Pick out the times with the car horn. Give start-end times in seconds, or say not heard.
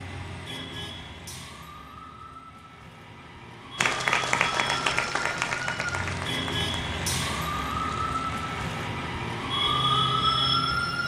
not heard.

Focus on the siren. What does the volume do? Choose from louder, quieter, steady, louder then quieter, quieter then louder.
louder.